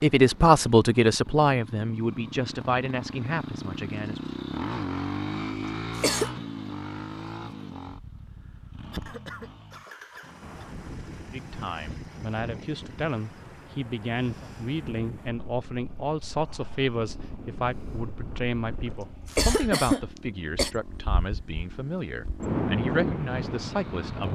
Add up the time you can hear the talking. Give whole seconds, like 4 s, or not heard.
17 s.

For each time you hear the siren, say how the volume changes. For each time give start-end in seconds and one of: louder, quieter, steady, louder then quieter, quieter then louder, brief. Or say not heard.
not heard.